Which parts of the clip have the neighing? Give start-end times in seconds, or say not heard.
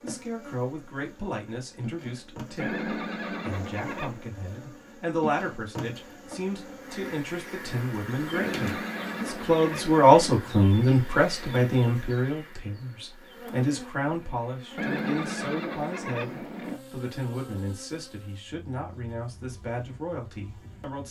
2.5-4.2, 8.3-10.3, 14.8-16.8.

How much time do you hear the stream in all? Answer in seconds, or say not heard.
not heard.